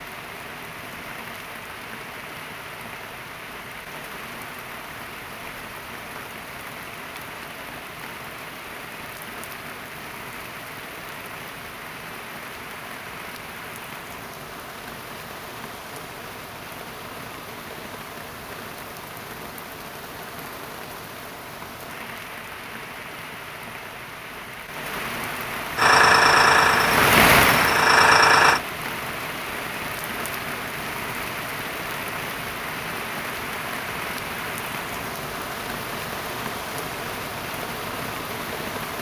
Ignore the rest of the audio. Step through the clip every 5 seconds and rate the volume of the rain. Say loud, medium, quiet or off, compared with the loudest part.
quiet, quiet, quiet, quiet, quiet, loud, medium, medium.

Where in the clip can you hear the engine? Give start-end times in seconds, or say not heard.
25.8-28.6.